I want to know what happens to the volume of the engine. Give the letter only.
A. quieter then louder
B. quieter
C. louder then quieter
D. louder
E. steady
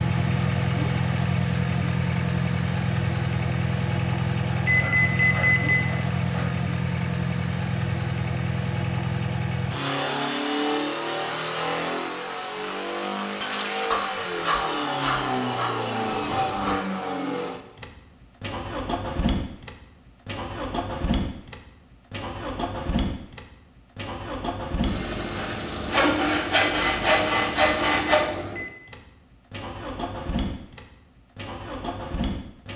B.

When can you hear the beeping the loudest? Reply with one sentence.
The volume of the beeping peaks at 5 seconds.